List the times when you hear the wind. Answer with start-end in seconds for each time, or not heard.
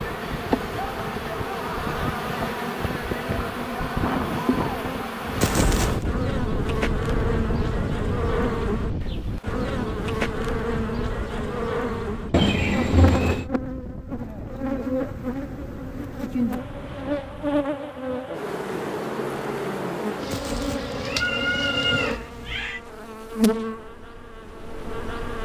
0.0-17.6.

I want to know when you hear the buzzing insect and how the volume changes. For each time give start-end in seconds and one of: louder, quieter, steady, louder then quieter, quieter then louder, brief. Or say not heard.
0.0-25.4 steady.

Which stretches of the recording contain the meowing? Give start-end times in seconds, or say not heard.
5.4-6.0, 12.3-13.5, 20.3-22.8.